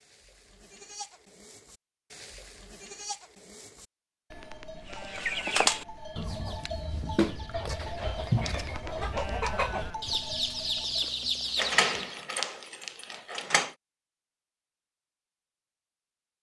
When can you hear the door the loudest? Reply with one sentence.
The loudest moment of the door is at 12 seconds.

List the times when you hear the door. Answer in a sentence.
You can hear the door from 11.6 to 13.8 s.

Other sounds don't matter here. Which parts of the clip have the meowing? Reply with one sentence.
You can't hear the meowing here.